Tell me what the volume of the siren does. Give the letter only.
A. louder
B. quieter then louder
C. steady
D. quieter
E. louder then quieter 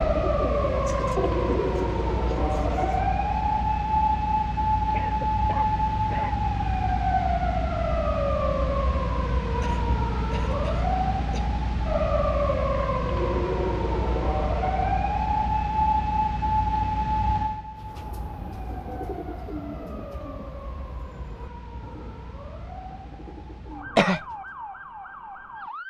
D.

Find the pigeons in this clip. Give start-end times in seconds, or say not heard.
0.0-3.0, 17.8-24.6.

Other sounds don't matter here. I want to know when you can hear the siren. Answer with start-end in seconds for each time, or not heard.
0.0-25.8.